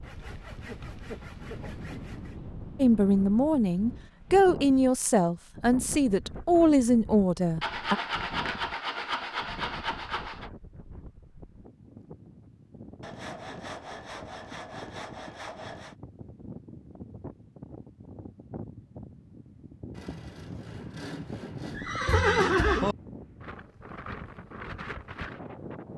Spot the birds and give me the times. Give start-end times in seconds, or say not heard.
not heard.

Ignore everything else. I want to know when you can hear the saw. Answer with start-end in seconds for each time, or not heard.
0.0-2.4, 7.6-10.5, 13.0-15.9, 19.9-21.8.